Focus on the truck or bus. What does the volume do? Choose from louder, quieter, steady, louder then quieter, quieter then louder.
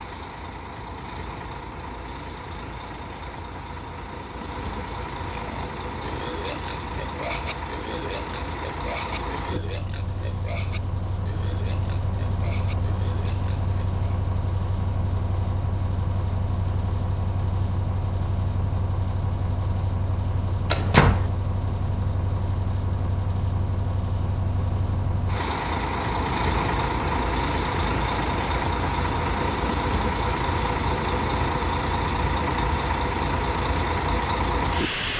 louder.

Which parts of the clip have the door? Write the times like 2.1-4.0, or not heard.
20.7-21.2.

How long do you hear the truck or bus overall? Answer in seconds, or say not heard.
35 s.